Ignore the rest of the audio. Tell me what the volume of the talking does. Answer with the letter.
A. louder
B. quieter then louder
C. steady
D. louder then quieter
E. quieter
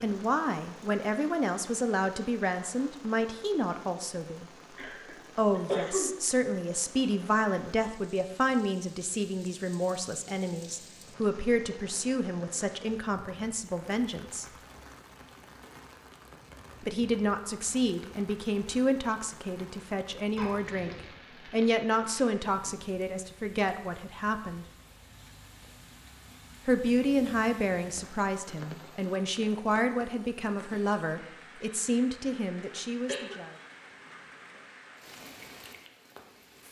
C.